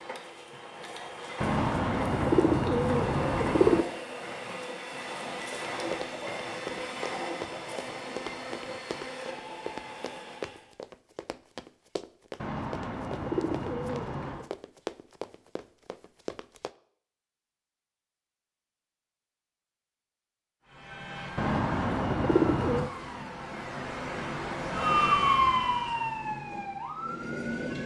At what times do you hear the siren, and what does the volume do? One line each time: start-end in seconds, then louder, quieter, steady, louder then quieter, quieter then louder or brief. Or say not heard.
20.6-27.8 louder then quieter.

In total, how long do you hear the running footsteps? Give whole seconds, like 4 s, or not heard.
11 s.